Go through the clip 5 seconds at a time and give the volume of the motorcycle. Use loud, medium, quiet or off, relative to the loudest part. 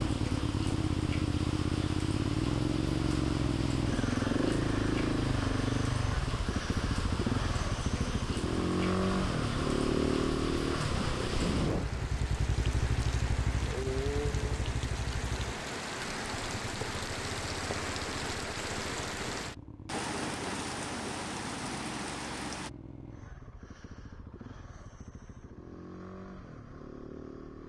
loud, loud, loud, quiet, quiet, quiet.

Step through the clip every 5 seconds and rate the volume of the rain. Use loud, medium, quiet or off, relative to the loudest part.
medium, medium, loud, loud, loud, off.